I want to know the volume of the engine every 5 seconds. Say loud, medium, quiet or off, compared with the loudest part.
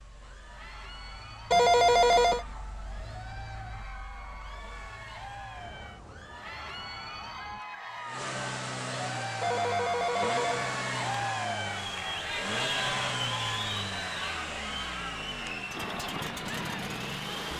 quiet, loud, loud, loud.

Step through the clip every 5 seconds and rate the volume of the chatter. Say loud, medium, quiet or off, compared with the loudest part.
quiet, medium, loud, medium.